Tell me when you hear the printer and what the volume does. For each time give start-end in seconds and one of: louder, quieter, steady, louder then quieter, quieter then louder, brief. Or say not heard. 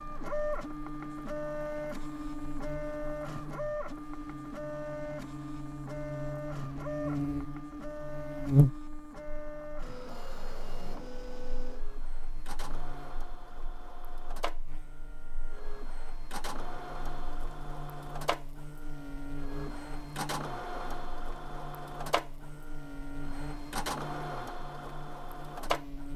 0.0-26.1 quieter then louder.